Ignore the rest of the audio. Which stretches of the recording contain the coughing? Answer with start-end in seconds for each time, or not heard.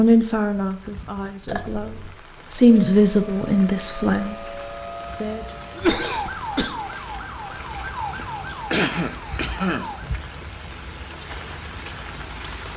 1.4-2.1, 5.8-6.8, 8.7-9.8.